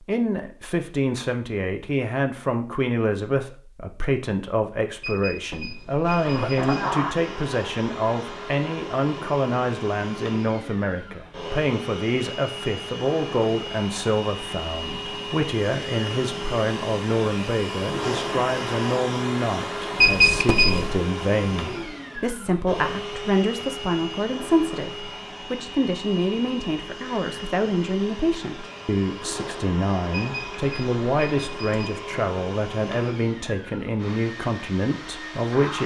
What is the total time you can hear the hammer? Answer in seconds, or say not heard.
not heard.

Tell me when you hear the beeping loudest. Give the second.
20 s.